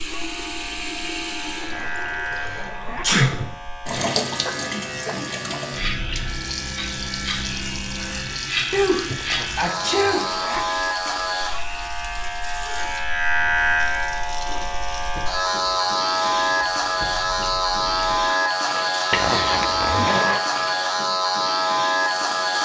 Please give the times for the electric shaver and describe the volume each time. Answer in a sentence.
You can hear the electric shaver from 0.0 to 22.5 s, getting louder.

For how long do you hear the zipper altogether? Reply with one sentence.
You can hear the zipper for 4 seconds altogether.